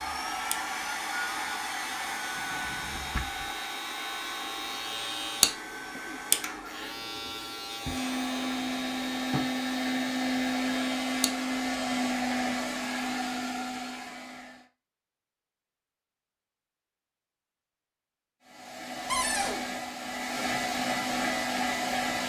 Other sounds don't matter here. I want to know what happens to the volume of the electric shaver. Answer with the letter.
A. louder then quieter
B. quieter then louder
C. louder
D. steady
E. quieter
A.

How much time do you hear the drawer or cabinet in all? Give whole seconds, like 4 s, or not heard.
3 s.